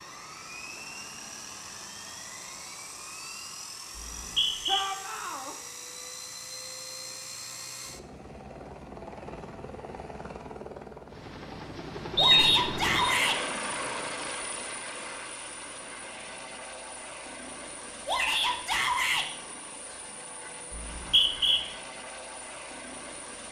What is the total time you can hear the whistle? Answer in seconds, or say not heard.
3 s.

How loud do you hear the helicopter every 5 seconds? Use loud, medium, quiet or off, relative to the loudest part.
medium, medium, loud, medium, medium.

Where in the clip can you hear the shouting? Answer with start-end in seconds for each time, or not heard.
4.7-5.5, 12.2-13.4, 18.1-19.2.